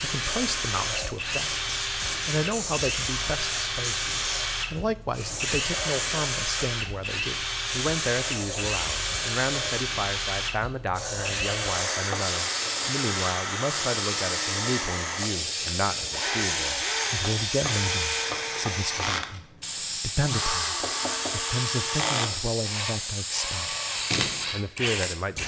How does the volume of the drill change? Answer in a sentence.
The volume of the drill stays about the same.